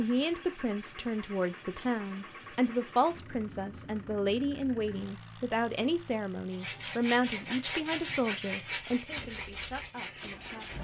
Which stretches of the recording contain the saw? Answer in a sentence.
The saw can be heard from 6.5 to 10.7 s.